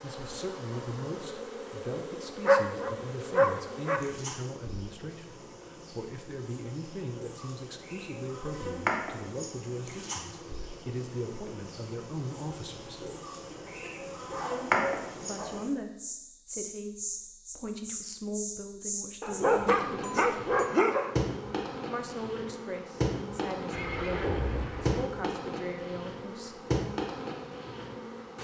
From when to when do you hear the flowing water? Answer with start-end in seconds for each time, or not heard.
not heard.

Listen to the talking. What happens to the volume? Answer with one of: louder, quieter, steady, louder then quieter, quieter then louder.
steady.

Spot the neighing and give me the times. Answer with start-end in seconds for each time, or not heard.
23.7-25.1.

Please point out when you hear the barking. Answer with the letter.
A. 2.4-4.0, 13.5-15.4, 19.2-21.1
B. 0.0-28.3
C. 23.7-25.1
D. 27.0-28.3
A.